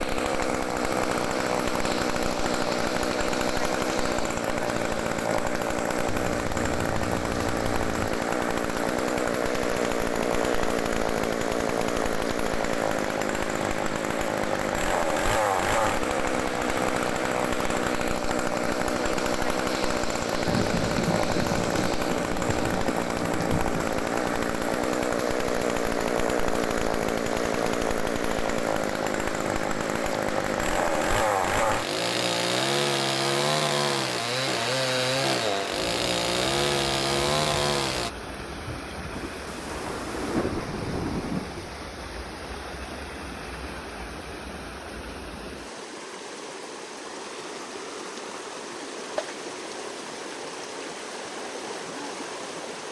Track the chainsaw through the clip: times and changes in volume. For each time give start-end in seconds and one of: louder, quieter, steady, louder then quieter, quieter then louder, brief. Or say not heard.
0.0-38.1 steady.